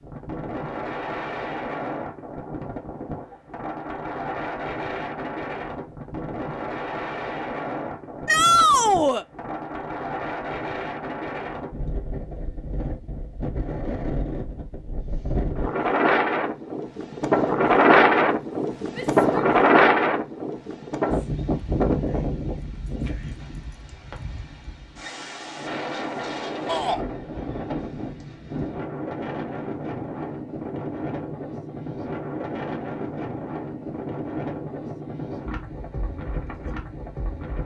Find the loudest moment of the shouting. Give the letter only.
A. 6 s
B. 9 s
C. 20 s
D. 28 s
B.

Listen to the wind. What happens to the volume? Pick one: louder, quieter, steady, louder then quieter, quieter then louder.
louder then quieter.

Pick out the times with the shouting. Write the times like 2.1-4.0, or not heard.
8.2-9.2, 18.9-19.5, 26.6-27.1.